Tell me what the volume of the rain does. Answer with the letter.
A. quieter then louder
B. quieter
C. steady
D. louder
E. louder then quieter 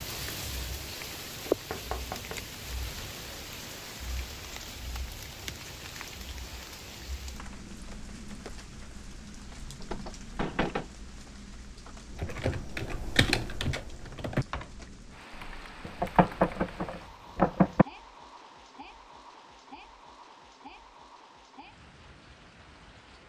B.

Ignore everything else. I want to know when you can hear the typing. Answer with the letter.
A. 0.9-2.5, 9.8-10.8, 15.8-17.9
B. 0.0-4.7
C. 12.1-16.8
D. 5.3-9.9
C.